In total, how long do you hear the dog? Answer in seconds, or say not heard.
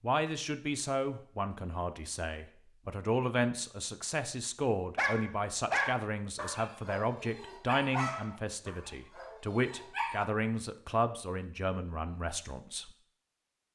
5 s.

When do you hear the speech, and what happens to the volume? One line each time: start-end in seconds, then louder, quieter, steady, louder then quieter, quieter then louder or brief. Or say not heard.
0.0-12.9 steady.